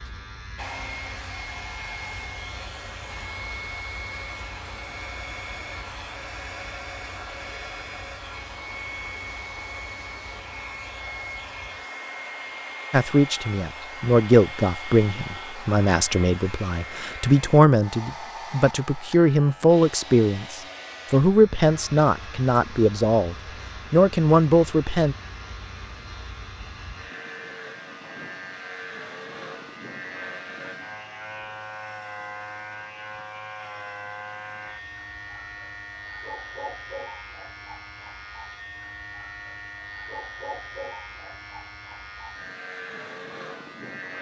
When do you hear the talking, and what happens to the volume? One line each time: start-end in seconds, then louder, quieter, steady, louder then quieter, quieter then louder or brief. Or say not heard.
12.9-25.1 steady.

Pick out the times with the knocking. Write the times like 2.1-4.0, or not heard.
not heard.